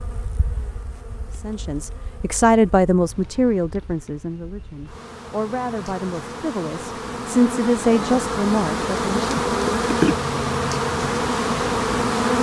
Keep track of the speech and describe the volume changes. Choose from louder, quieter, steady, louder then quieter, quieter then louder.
quieter then louder.